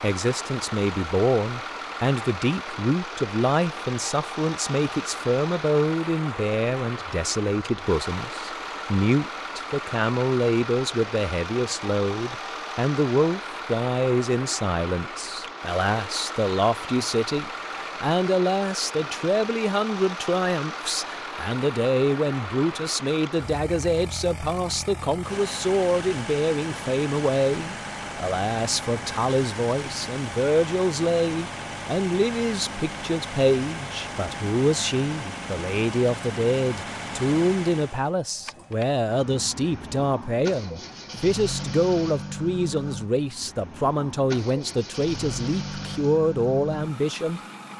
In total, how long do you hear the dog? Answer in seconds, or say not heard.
not heard.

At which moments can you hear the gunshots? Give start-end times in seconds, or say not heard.
not heard.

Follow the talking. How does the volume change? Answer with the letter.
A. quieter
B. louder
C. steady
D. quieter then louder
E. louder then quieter
C.